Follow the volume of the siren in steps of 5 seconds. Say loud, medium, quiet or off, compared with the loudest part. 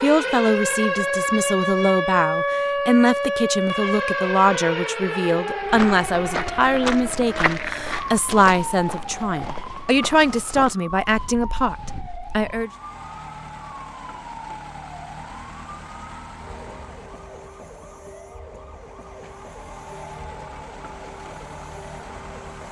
loud, medium, quiet, quiet, quiet.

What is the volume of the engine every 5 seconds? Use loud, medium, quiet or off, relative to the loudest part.
off, off, loud, loud, loud.